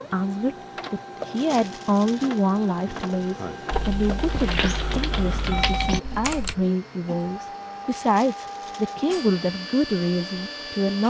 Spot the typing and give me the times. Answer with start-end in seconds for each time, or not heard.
3.7-6.5.